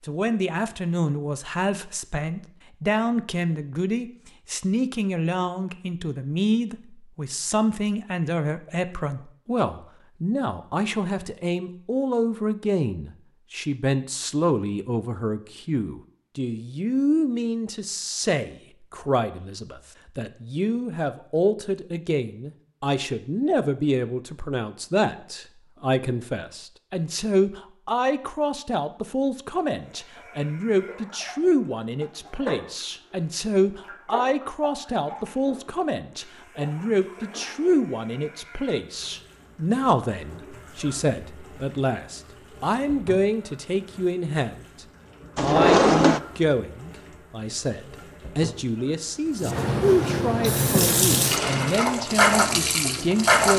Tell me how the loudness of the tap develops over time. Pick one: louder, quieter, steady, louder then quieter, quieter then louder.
quieter then louder.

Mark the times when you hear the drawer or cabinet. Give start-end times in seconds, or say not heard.
45.4-46.2.